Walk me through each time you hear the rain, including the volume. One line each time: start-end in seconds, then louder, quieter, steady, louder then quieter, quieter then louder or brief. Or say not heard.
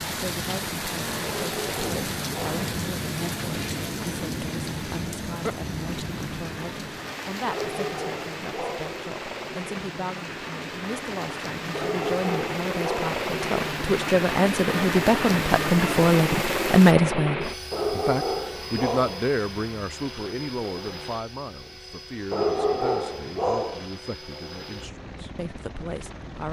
0.0-16.9 quieter then louder.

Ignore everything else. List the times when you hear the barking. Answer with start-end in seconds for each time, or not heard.
1.2-2.6, 7.5-9.0, 11.7-13.1, 17.7-19.3, 22.3-23.9.